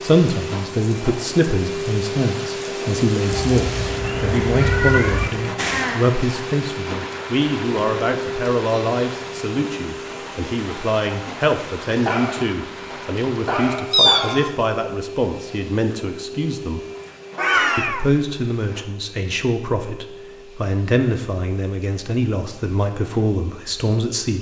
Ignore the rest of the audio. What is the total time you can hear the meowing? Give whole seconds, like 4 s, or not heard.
3 s.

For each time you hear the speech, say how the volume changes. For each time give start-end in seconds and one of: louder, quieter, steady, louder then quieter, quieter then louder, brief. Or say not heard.
0.0-16.8 steady
17.8-24.3 steady.